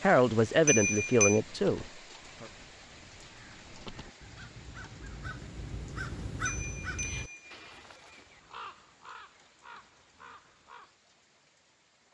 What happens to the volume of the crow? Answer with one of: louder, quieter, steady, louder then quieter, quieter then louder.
louder then quieter.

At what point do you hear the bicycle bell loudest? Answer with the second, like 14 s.
1 s.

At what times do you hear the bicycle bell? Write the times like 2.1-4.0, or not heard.
0.7-1.4, 6.5-7.5.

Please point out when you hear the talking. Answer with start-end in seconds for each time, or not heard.
0.0-2.5.